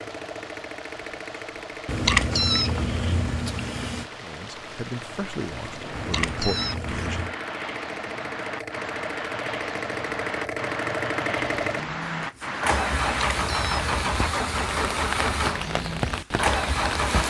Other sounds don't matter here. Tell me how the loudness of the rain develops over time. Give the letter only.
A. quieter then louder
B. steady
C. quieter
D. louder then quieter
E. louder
E.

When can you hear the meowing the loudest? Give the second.
2 s.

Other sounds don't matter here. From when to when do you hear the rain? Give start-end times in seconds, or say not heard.
0.0-17.2.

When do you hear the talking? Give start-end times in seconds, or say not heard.
4.2-7.3.